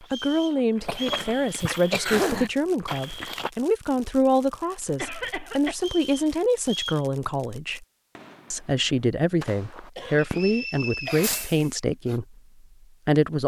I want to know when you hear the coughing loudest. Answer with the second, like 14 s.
2 s.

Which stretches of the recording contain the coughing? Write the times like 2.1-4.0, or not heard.
0.8-2.5, 4.8-5.8, 9.9-11.5.